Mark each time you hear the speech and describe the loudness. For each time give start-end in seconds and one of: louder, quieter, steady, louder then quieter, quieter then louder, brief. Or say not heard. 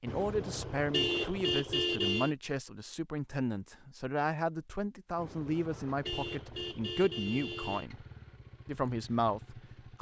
0.0-8.1 steady
8.7-9.9 brief.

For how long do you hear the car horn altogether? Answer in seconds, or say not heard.
5 s.